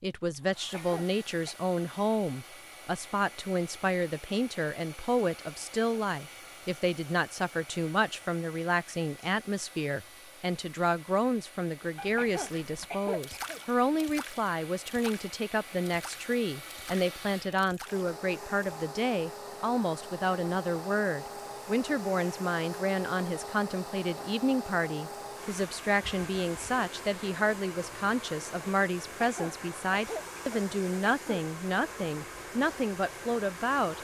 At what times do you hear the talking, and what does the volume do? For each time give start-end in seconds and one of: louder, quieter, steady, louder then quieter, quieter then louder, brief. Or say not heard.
0.0-33.9 steady.